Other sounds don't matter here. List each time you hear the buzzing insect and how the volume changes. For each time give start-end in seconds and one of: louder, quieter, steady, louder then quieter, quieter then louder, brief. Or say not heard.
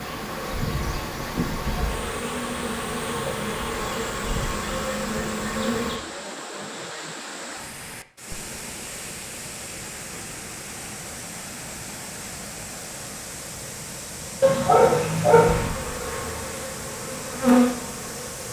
0.0-6.0 steady
15.5-18.4 brief.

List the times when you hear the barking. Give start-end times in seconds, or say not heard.
14.4-15.7.